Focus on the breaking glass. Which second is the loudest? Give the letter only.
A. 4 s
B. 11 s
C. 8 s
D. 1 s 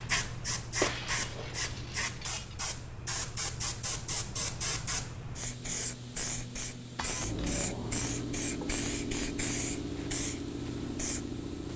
D.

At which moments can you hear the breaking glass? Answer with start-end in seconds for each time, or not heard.
0.8-2.6, 7.0-7.7.